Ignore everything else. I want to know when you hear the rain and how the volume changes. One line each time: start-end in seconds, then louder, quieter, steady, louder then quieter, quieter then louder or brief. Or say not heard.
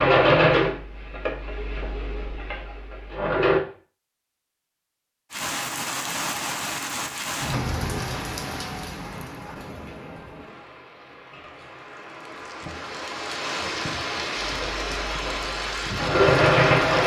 5.3-17.0 quieter then louder.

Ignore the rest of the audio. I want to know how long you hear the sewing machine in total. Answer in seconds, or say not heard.
6 s.